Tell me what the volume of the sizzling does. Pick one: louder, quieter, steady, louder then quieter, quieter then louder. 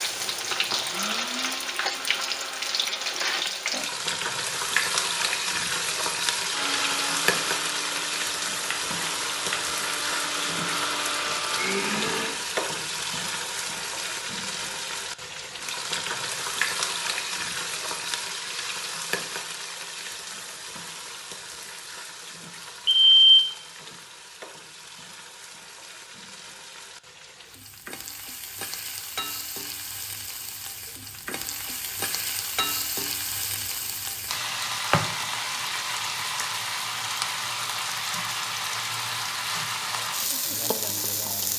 quieter then louder.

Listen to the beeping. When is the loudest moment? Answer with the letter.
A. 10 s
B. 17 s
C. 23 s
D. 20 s
C.